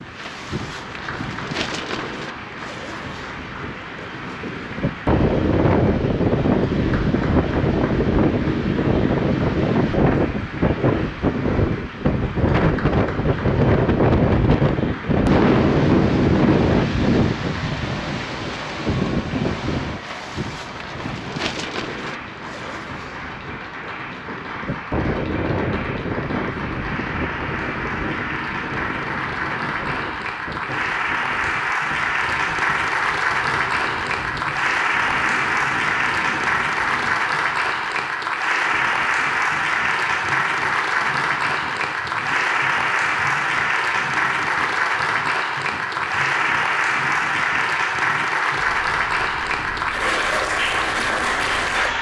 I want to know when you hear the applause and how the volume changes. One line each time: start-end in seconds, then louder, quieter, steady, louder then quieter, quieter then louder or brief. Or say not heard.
0.0-51.9 louder.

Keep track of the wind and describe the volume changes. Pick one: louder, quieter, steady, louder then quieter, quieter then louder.
quieter.